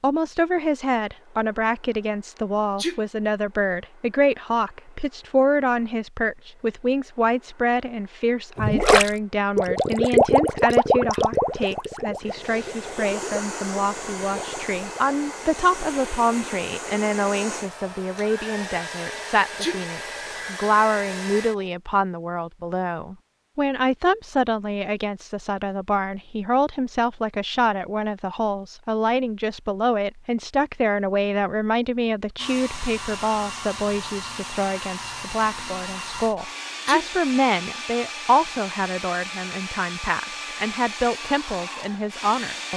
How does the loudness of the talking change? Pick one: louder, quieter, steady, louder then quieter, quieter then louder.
steady.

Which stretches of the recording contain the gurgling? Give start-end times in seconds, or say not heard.
8.6-15.2.